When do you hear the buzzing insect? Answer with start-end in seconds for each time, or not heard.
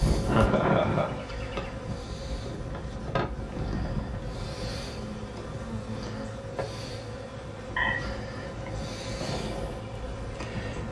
0.0-10.8.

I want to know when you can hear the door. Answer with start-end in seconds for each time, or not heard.
not heard.